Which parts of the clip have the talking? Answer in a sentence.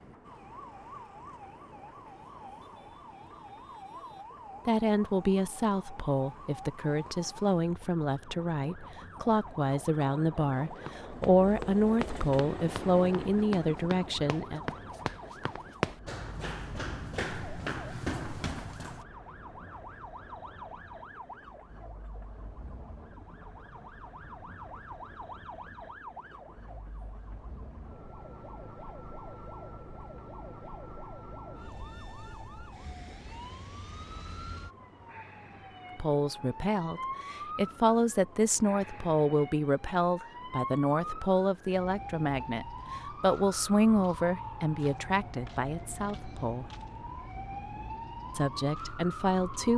The talking can be heard from 4.7 to 14.6 s, from 36.0 to 46.6 s and from 48.3 to 49.7 s.